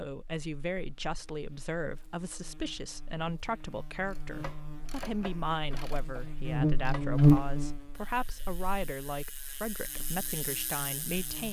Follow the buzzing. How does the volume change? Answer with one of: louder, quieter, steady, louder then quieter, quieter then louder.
louder then quieter.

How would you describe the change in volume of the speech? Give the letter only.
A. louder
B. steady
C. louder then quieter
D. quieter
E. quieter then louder
B.